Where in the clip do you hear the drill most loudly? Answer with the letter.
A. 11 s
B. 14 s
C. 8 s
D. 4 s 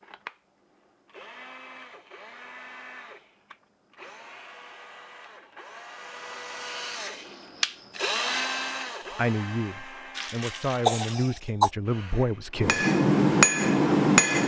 C.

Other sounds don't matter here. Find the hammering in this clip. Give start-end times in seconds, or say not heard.
12.6-14.4.